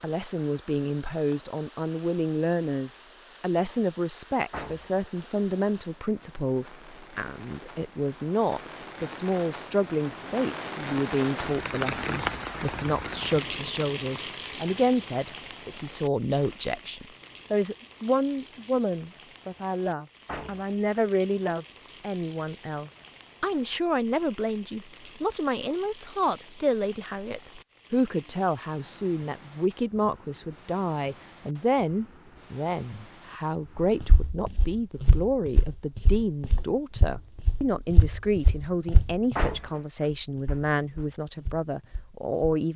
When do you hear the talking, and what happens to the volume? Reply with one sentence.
The talking can be heard from 0.0 to 42.7 s, at a steady volume.